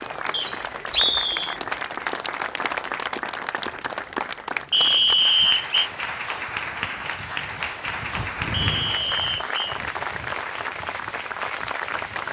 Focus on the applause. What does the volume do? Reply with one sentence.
The volume of the applause stays about the same.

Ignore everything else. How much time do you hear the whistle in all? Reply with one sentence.
You can hear the whistle for 4 seconds altogether.